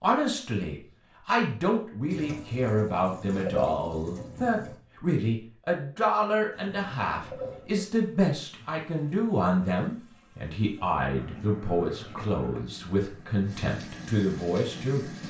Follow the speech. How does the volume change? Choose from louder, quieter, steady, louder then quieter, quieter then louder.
steady.